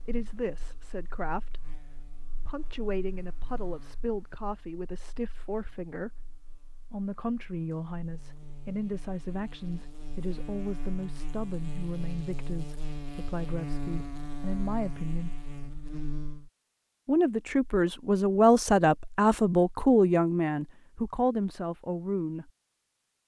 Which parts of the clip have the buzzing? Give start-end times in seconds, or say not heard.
0.0-16.5.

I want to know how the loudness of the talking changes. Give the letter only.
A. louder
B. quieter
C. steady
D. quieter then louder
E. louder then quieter
A.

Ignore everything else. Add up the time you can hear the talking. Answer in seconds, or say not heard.
20 s.